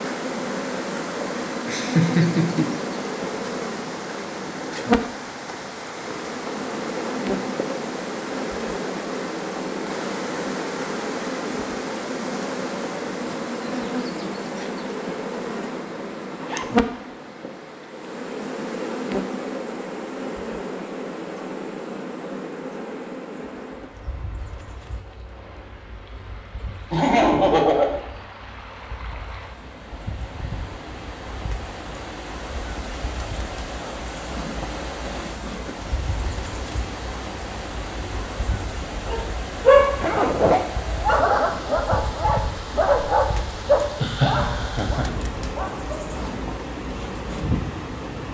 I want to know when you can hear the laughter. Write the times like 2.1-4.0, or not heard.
1.2-2.6, 26.9-27.9, 43.9-45.1.